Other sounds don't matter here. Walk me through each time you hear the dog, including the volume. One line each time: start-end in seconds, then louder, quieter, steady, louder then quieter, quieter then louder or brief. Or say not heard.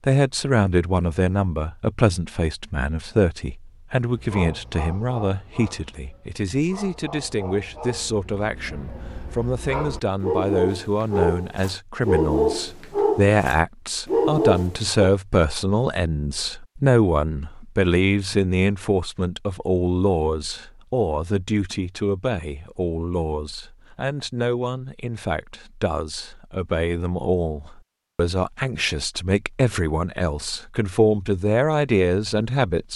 4.0-15.1 louder.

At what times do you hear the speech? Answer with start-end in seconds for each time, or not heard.
0.1-32.9.